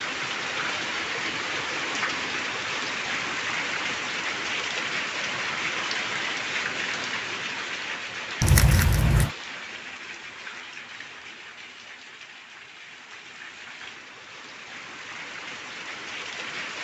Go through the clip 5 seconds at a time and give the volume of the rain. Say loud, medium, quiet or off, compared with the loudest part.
loud, loud, quiet, medium.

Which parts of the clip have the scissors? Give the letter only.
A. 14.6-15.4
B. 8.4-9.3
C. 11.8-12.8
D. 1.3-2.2
B.